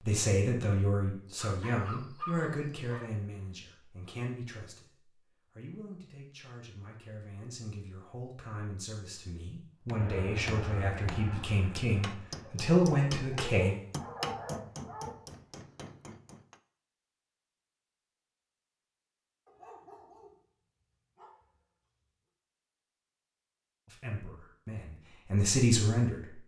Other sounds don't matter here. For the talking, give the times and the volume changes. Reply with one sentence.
The talking can be heard from 0.0 to 13.8 s, getting quieter then louder; and briefly from 23.9 to 26.4 s.